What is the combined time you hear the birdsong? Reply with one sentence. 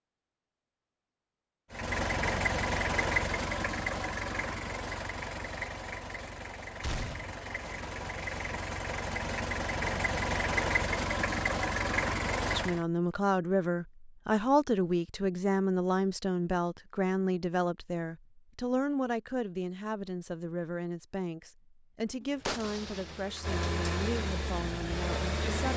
The birdsong can't be heard in this clip.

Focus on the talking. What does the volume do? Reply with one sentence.
The volume of the talking goes down.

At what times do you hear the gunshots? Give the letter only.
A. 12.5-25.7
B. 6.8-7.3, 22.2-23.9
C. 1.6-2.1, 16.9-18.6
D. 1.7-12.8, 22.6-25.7
B.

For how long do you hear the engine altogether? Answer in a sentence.
You can hear the engine for 14 seconds altogether.